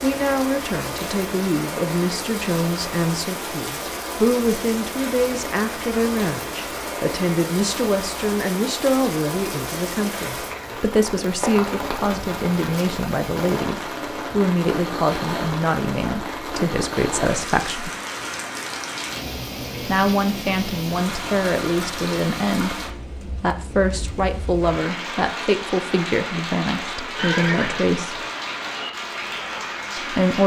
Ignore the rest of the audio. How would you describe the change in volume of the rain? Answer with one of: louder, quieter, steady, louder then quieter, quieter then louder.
steady.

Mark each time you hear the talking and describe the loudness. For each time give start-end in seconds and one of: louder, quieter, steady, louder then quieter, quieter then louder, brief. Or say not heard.
0.0-17.9 steady
19.8-28.2 steady
29.9-30.4 brief.